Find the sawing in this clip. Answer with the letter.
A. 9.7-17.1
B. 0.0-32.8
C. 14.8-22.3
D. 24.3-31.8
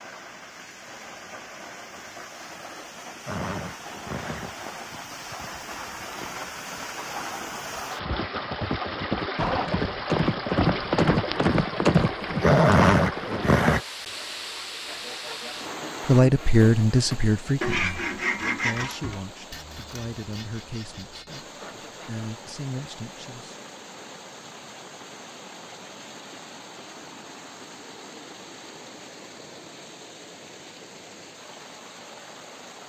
C.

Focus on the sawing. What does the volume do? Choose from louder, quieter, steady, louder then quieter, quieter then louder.
louder then quieter.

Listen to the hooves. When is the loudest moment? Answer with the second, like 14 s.
13 s.